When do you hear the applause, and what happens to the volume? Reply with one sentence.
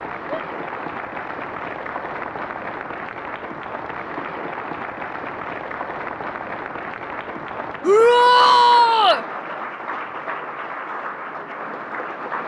The applause can be heard from 0.0 to 12.4 s, at a steady volume.